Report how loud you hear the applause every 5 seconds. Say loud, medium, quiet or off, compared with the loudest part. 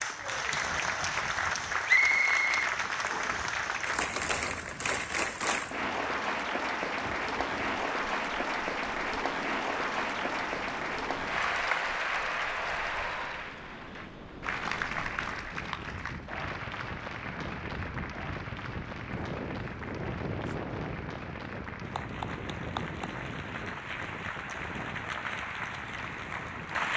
loud, loud, loud, medium, medium, loud.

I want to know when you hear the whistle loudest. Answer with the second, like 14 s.
2 s.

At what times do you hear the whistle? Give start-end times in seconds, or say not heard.
1.9-3.5.